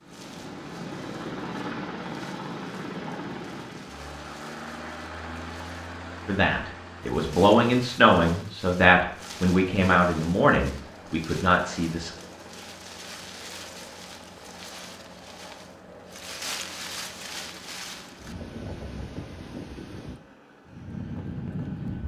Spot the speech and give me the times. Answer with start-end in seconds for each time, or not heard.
6.2-12.1.